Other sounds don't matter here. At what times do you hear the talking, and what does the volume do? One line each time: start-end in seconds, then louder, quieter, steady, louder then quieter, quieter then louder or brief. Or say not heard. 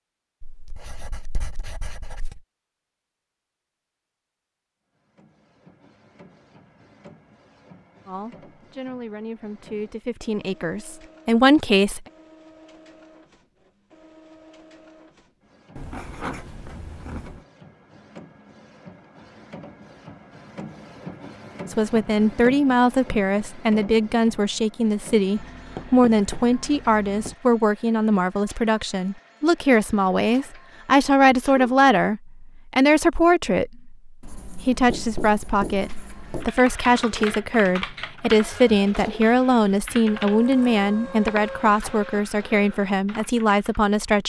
8.1-12.1 louder
21.7-44.2 steady.